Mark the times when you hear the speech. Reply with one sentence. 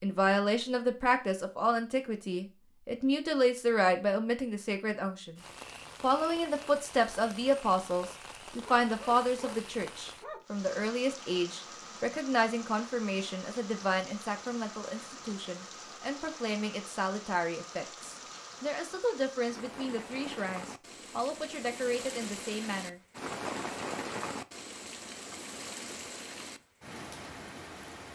You can hear the speech from 0.0 to 5.4 s and from 6.0 to 23.0 s.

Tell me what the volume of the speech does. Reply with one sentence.
The loudness of the speech goes down.